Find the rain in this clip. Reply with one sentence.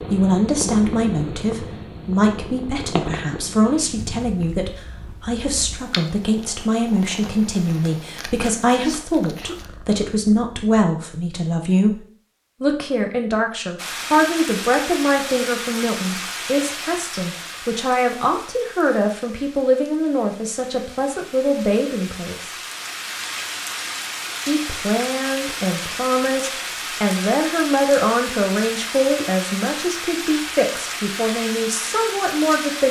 You can hear the rain from 13.8 to 32.8 s.